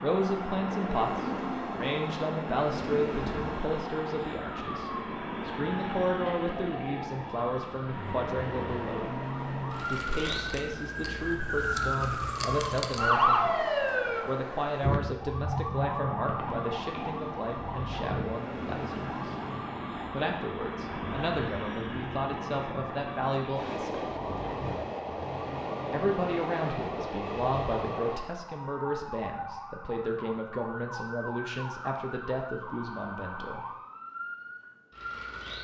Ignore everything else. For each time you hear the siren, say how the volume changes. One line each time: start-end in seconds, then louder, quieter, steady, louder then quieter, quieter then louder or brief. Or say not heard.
0.0-35.5 louder then quieter.